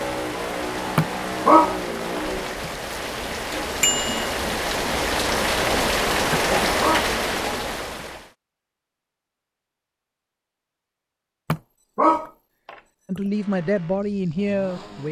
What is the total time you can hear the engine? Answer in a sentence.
You can hear the engine for 4 seconds altogether.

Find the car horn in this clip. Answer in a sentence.
The car horn can't be heard in this clip.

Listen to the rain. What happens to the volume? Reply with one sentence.
The volume of the rain goes up.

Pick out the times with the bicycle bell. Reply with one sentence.
You can hear the bicycle bell from 3.8 to 4.3 s.